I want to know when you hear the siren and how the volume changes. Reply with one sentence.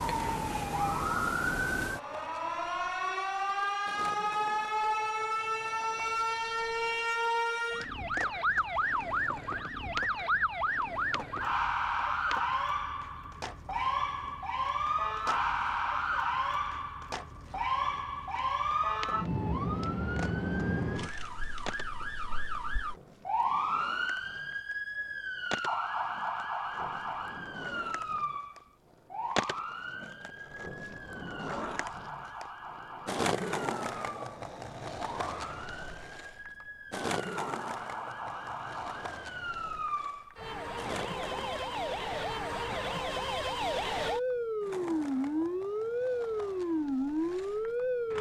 The siren can be heard from 0.0 to 48.1 s, getting quieter then louder.